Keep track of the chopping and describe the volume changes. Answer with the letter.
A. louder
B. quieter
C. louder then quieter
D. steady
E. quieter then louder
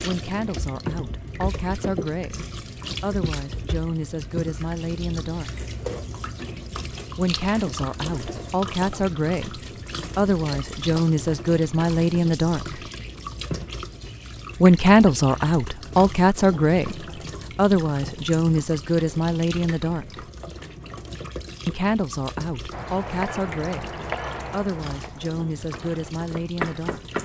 E.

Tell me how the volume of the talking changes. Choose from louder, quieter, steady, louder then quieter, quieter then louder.
louder then quieter.